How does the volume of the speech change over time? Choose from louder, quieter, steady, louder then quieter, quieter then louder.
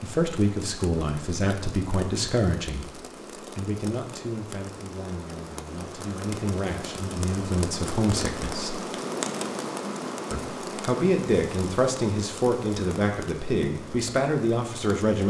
quieter then louder.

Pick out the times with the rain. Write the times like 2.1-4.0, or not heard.
0.0-15.2.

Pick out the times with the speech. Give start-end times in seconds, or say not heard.
0.0-8.8, 10.3-15.2.